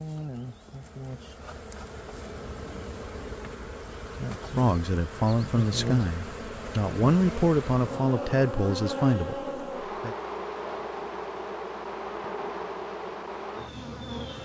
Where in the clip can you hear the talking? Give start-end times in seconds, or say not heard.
4.5-10.2.